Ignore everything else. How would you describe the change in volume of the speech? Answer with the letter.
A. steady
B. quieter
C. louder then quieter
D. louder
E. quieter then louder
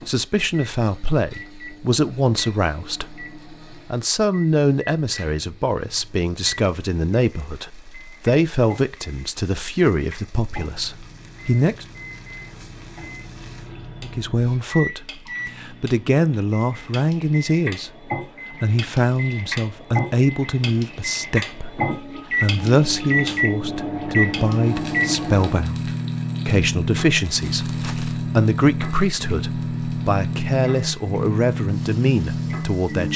A.